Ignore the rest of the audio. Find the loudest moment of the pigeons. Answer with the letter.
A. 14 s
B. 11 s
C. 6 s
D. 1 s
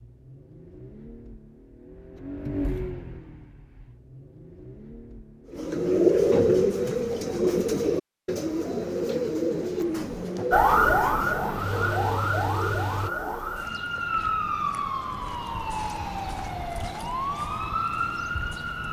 C.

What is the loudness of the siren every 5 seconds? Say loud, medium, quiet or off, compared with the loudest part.
off, off, loud, medium.